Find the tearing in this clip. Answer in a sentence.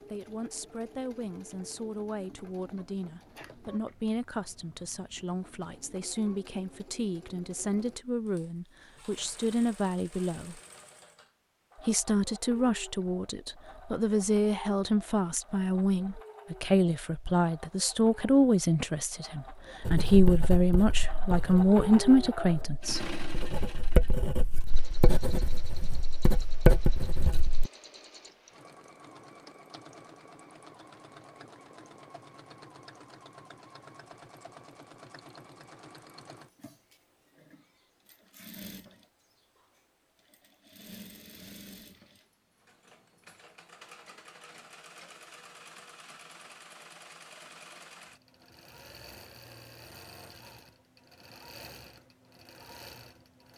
You can't hear the tearing here.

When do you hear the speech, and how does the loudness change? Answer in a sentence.
The speech can be heard from 0.1 to 10.6 s, getting louder; and from 11.8 to 23.1 s, getting louder.